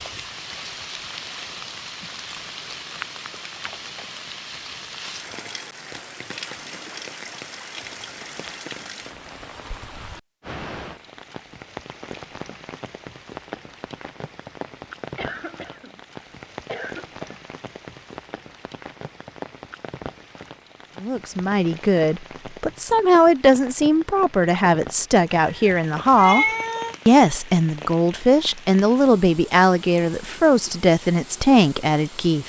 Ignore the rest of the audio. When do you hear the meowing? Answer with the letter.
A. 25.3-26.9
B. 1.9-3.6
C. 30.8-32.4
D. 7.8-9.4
A.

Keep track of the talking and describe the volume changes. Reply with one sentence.
The loudness of the talking stays about the same.